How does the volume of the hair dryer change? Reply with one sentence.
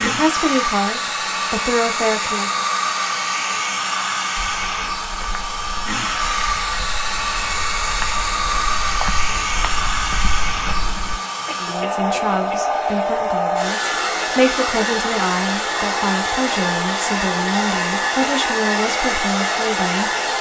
The volume of the hair dryer stays about the same.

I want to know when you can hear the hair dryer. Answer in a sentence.
The hair dryer can be heard from 0.0 to 20.3 s.